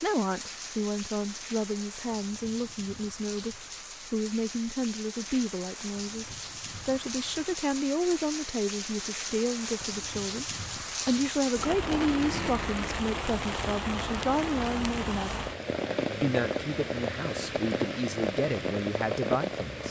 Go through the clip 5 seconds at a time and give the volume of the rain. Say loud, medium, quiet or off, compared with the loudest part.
medium, medium, loud, loud.